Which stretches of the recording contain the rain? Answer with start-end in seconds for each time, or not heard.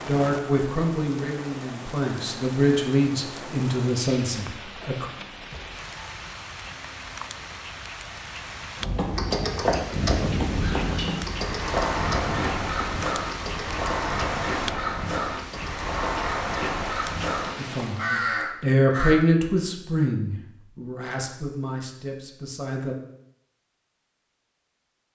0.0-18.2.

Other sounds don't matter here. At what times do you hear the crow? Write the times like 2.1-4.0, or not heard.
10.4-19.1.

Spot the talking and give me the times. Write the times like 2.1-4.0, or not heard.
0.1-5.0, 17.6-22.9.